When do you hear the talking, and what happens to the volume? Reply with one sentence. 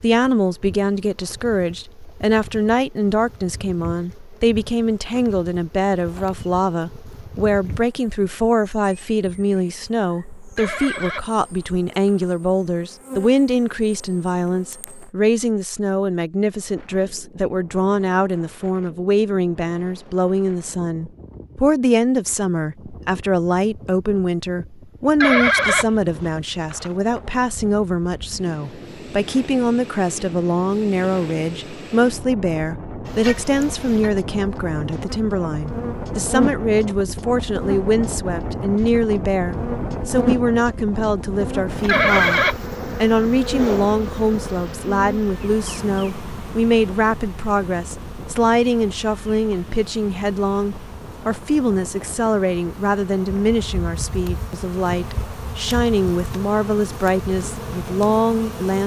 The talking can be heard from 0.0 to 58.8 s, at a steady volume.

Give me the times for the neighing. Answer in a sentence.
The neighing can be heard from 10.6 to 12.2 s, from 25.2 to 26.9 s and from 41.9 to 42.5 s.